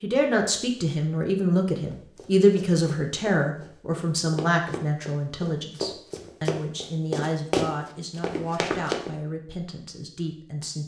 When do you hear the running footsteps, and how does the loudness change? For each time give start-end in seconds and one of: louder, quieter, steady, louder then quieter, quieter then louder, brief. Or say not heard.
1.9-9.1 louder.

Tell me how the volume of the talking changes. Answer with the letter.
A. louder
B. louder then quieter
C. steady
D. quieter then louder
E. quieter
E.